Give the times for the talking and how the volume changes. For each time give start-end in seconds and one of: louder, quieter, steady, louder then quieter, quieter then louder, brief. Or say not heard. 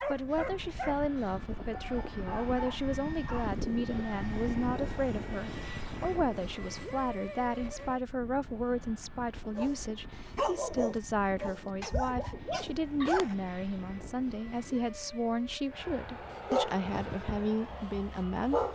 0.1-18.6 steady.